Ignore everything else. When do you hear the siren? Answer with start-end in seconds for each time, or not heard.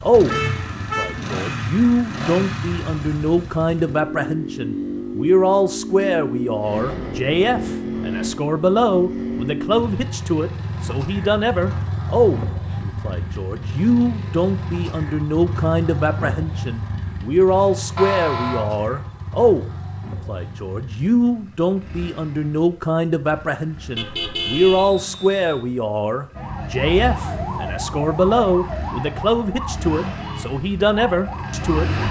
26.3-32.0.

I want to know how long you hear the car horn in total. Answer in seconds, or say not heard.
3 s.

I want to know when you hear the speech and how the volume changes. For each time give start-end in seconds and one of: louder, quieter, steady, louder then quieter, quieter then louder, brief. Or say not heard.
0.0-31.9 steady.